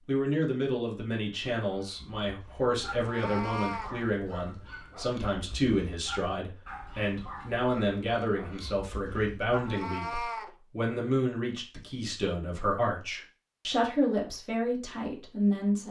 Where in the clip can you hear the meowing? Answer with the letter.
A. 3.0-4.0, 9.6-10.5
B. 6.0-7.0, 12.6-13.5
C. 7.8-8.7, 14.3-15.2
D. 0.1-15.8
A.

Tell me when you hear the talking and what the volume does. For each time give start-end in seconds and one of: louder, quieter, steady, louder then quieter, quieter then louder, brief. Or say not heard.
0.1-15.8 steady.